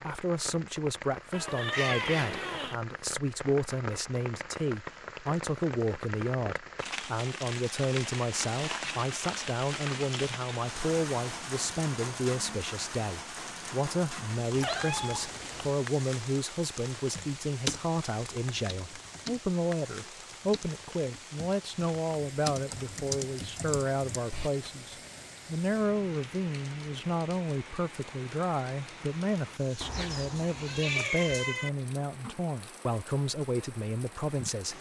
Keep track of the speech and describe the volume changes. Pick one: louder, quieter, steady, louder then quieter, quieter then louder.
steady.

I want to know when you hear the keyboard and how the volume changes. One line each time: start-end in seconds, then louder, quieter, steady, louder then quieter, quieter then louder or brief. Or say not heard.
17.1-24.5 quieter then louder.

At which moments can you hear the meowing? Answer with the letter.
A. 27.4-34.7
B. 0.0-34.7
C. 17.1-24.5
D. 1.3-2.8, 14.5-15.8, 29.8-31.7
D.